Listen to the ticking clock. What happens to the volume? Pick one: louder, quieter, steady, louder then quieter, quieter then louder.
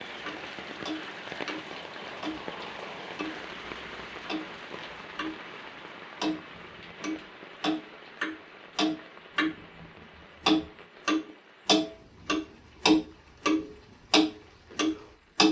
louder.